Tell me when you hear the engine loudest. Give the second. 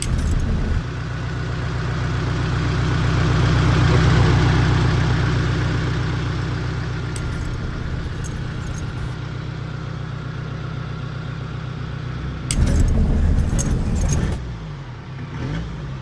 4 s.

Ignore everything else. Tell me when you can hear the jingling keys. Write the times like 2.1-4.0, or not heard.
0.0-0.8, 7.2-9.2, 12.5-14.4.